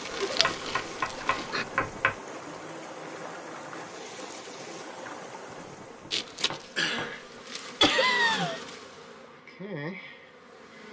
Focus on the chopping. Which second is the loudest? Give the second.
2 s.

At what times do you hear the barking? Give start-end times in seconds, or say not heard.
not heard.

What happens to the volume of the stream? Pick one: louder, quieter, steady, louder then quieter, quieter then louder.
steady.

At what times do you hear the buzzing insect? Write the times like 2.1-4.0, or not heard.
0.0-1.6, 6.1-10.8.